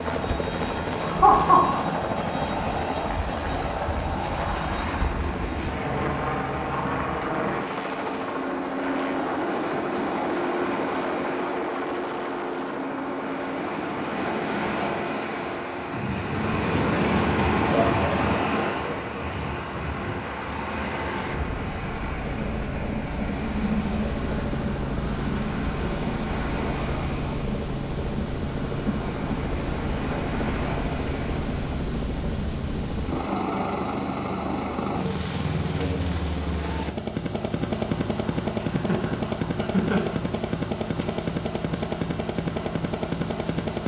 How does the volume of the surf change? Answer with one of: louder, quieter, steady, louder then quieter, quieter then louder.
louder then quieter.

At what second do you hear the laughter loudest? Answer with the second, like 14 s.
1 s.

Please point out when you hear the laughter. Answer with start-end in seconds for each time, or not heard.
1.0-1.8, 17.7-19.3, 38.6-40.1.